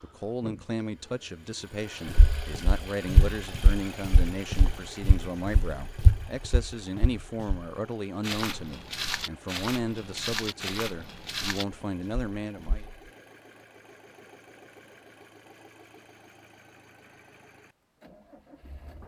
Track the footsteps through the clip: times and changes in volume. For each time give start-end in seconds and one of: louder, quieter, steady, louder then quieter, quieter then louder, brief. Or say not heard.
2.0-12.9 steady.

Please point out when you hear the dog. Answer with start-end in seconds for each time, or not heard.
not heard.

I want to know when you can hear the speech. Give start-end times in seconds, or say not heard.
0.0-12.8.